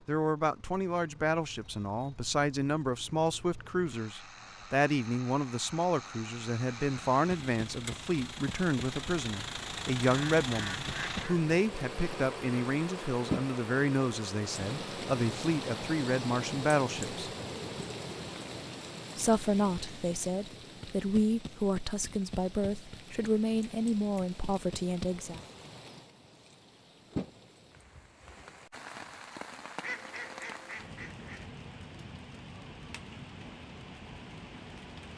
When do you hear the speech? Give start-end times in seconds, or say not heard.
0.1-17.3, 19.1-25.4.